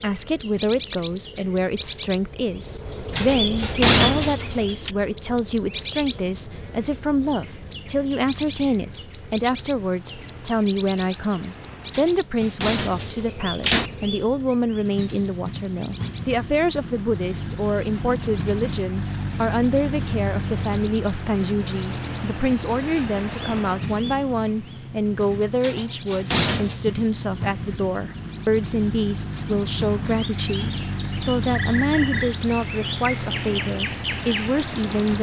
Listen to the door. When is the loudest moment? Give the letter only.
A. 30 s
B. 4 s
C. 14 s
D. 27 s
B.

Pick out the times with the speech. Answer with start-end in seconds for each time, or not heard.
0.0-35.1.